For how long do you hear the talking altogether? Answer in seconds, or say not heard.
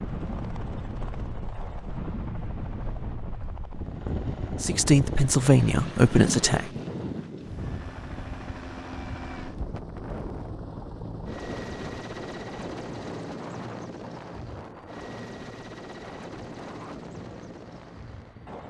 2 s.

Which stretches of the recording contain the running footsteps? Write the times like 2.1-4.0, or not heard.
not heard.